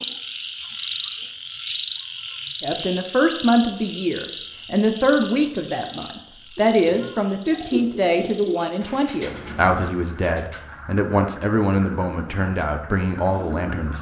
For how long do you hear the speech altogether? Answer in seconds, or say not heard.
11 s.